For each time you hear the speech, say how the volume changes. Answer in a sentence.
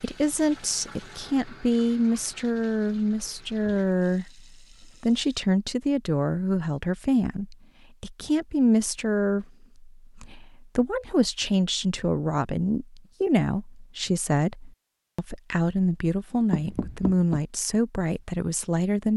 You can hear the speech from 0.0 to 19.1 s, at a steady volume.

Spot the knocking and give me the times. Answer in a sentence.
You can hear the knocking from 16.5 to 17.4 s.